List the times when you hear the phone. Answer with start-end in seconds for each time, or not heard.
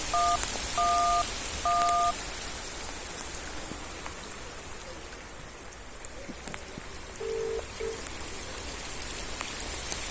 0.1-2.1, 7.2-8.0.